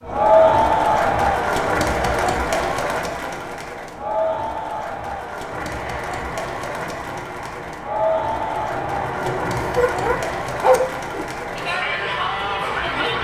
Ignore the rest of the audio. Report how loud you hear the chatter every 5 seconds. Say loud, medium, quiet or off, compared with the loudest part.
loud, medium, medium.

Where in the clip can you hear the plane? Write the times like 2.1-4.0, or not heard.
5.5-13.1.